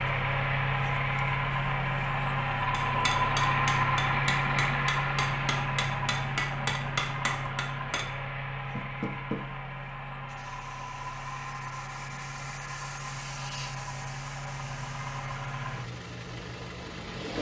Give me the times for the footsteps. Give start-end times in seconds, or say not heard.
not heard.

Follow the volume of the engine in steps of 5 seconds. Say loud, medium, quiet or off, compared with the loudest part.
loud, medium, medium, medium.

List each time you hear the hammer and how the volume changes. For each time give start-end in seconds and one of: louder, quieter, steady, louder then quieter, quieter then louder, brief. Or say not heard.
2.7-8.1 steady.